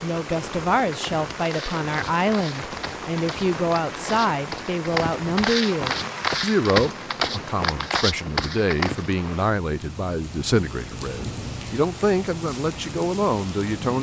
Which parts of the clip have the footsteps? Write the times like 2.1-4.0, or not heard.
0.9-9.2.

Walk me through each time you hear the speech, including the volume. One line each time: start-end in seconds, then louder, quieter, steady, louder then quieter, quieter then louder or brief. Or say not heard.
0.0-13.9 steady.